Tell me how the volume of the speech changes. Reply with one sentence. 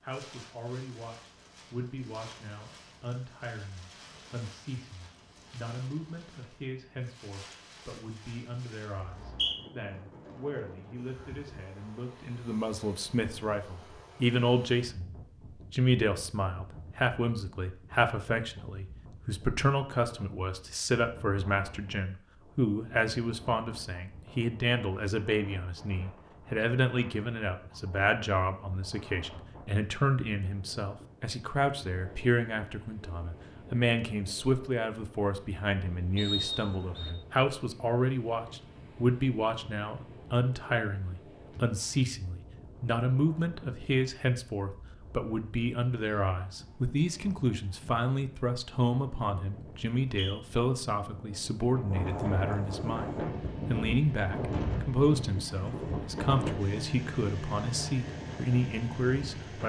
The volume of the speech goes up.